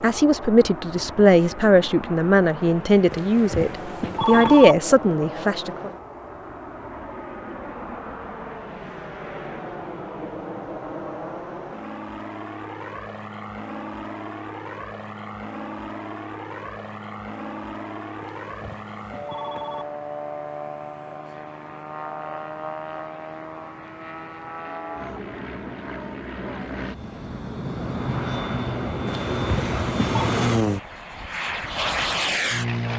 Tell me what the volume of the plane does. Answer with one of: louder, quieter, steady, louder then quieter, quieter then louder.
louder.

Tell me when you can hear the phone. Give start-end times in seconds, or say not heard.
3.1-4.8, 18.2-19.9, 29.3-30.3.